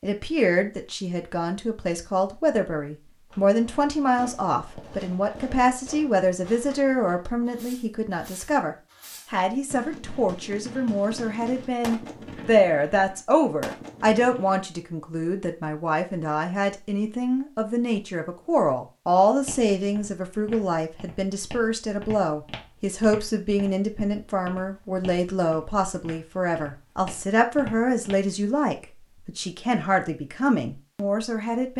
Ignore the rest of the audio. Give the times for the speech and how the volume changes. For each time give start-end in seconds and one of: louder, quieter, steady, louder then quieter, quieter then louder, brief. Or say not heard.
0.0-31.7 steady.